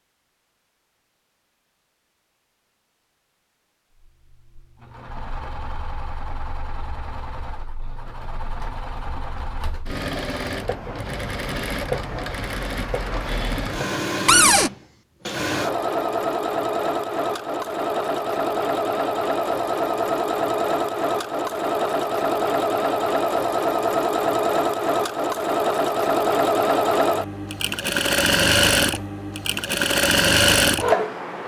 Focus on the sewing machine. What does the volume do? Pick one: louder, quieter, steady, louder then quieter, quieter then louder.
louder.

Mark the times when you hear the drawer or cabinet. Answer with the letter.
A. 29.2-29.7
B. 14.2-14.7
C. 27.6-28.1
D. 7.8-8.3
B.